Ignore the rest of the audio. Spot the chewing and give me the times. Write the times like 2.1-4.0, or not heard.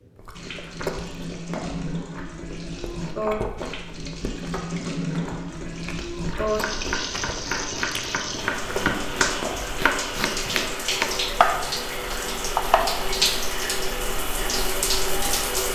0.1-9.8.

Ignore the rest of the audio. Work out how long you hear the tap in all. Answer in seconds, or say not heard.
16 s.